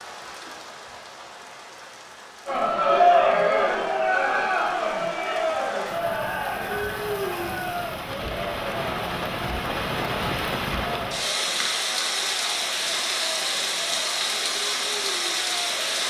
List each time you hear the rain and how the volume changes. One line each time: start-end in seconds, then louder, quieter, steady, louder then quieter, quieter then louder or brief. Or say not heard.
0.0-16.0 louder.